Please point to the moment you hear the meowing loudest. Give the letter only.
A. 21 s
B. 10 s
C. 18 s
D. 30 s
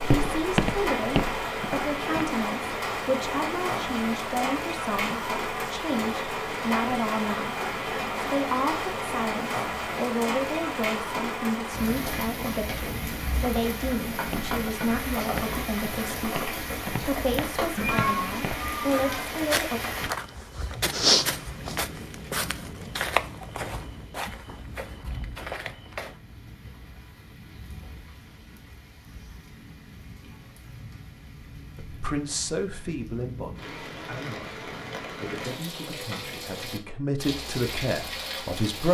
C.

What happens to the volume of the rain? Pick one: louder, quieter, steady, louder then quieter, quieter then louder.
quieter then louder.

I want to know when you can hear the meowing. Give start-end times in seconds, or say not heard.
17.8-19.2.